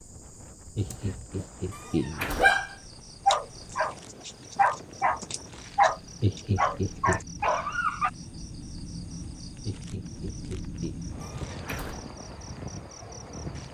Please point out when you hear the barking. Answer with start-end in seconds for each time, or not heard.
0.8-8.1.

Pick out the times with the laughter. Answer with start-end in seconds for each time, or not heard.
0.8-2.3, 6.2-7.2, 9.7-11.0.